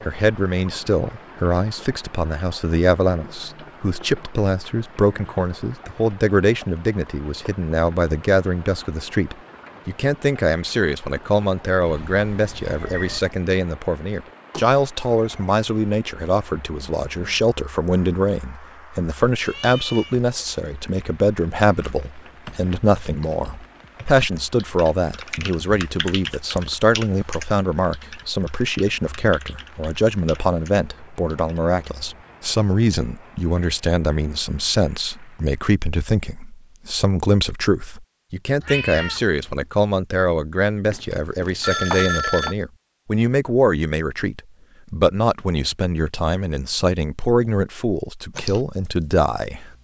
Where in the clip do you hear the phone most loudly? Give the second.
42 s.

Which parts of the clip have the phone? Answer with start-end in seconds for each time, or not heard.
14.5-15.6, 40.9-42.5.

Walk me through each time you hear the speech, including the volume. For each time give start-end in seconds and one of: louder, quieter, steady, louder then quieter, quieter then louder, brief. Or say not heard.
0.0-49.7 steady.